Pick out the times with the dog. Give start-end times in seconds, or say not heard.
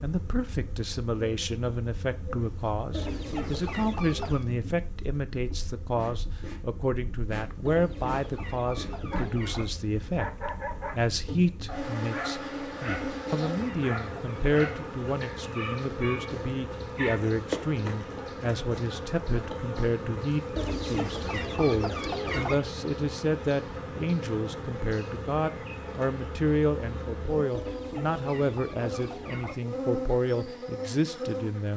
9.1-17.2.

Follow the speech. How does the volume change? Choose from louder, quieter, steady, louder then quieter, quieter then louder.
steady.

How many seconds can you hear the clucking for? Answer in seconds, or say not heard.
9 s.